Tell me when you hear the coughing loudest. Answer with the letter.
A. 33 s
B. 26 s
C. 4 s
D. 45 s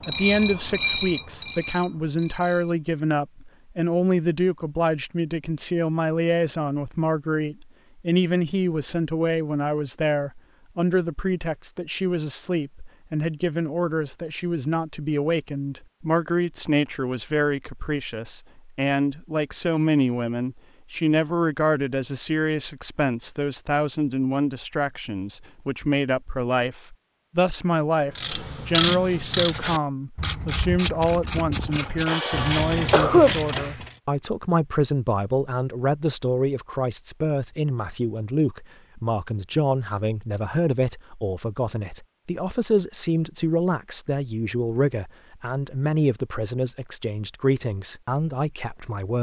A.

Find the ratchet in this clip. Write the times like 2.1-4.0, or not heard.
0.0-2.8, 28.1-34.0.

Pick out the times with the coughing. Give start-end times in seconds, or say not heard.
31.6-33.4.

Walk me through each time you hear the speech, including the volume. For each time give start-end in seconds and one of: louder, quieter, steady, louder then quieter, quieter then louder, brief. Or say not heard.
0.1-49.1 steady.